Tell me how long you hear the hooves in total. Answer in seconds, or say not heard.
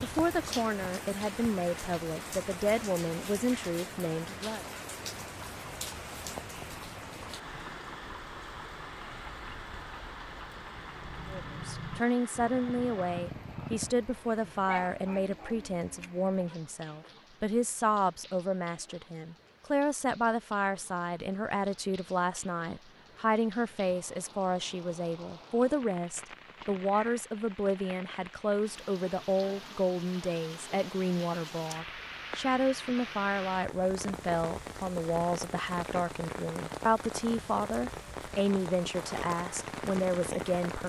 9 s.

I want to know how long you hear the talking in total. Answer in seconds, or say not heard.
34 s.